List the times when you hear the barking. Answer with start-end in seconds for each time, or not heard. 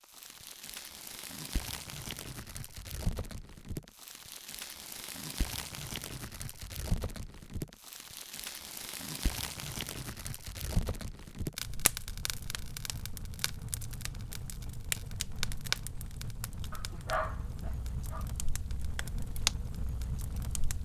16.7-18.2.